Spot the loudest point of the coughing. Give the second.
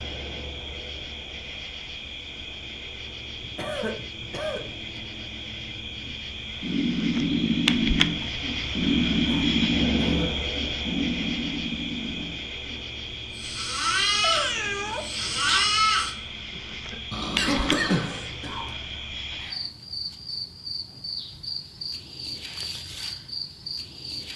18 s.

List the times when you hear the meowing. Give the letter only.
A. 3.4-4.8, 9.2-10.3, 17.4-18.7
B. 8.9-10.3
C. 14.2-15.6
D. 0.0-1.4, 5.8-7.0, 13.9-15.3
C.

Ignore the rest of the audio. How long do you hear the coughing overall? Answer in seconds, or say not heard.
4 s.